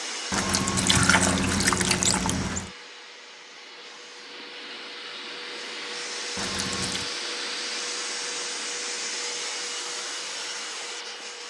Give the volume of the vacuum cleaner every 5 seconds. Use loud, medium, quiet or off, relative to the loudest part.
medium, loud, loud.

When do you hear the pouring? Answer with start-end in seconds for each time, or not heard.
0.3-2.7, 6.3-7.1.